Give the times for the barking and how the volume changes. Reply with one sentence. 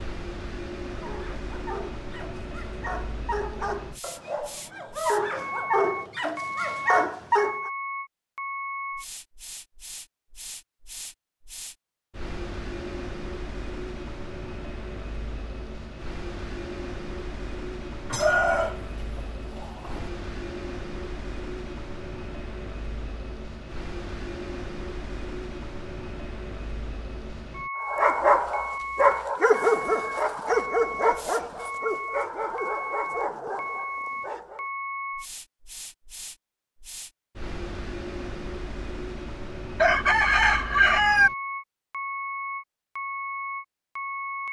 You can hear the barking from 0.9 to 7.7 s, getting louder; and from 27.8 to 34.6 s, getting quieter.